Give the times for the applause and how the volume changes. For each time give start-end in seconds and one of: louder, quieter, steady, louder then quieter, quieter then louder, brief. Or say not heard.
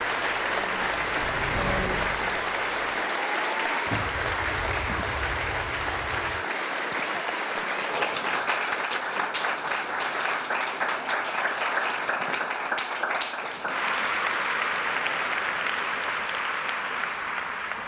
0.0-17.8 steady.